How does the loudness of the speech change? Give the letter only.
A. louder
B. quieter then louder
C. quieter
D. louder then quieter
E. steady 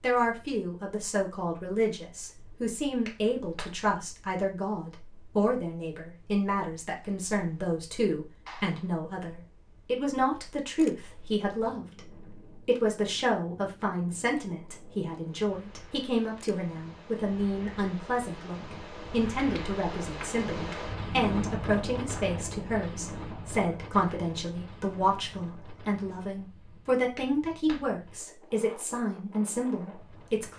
E.